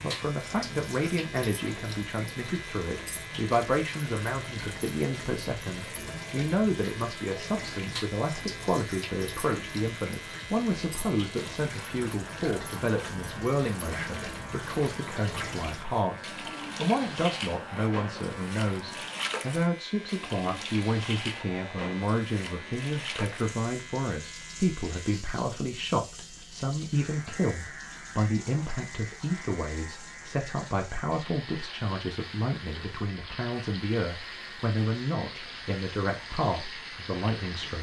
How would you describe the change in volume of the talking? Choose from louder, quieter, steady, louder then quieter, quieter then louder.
steady.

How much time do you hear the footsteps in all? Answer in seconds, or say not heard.
not heard.